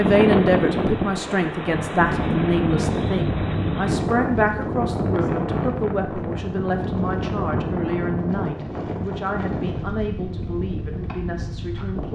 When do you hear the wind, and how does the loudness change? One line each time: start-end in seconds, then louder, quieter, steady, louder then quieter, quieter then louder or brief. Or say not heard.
0.0-12.1 quieter.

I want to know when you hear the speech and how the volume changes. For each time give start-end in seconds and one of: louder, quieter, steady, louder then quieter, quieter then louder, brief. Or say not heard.
0.0-12.1 quieter.